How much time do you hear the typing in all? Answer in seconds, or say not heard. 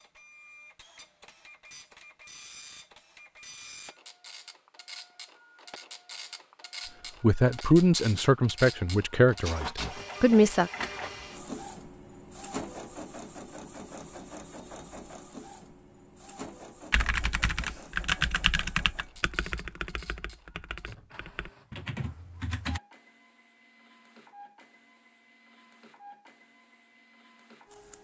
6 s.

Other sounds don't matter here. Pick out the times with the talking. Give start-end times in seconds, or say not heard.
7.2-10.7.